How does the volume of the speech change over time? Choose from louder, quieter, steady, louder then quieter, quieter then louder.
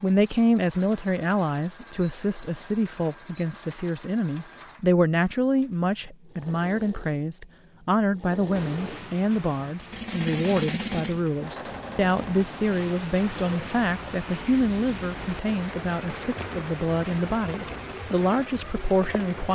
steady.